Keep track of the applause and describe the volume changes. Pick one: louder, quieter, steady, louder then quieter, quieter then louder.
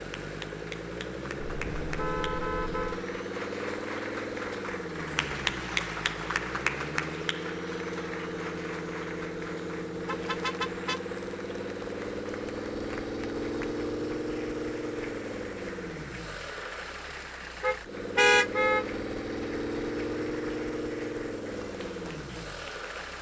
louder then quieter.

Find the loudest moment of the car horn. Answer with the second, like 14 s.
18 s.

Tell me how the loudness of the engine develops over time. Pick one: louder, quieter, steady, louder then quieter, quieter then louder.
steady.